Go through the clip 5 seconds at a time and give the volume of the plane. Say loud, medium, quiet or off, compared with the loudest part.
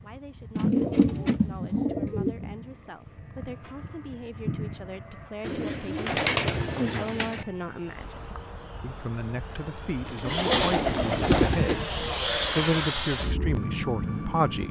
medium, quiet, loud.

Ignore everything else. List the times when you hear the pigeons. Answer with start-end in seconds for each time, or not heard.
0.6-2.5, 5.4-7.5, 10.1-12.8.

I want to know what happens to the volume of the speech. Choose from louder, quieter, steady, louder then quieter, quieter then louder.
louder.